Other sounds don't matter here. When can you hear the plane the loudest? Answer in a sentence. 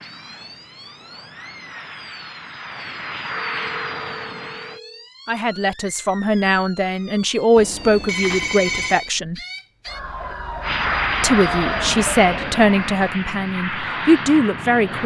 The volume of the plane peaks at 11 seconds.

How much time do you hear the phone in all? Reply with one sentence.
The phone can be heard for 3 seconds in total.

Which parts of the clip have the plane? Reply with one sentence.
You can hear the plane from 0.0 to 4.8 s and from 10.6 to 15.0 s.